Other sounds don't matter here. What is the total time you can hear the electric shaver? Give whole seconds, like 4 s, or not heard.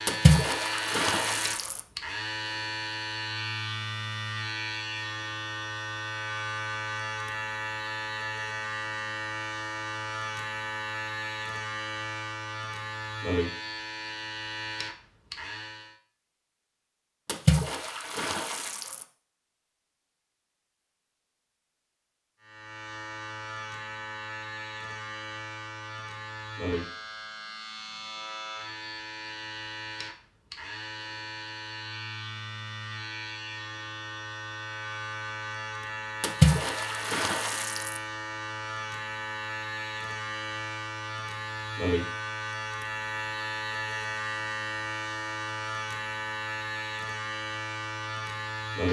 42 s.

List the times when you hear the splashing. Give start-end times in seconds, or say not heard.
0.1-1.8, 17.2-19.1, 36.2-38.0.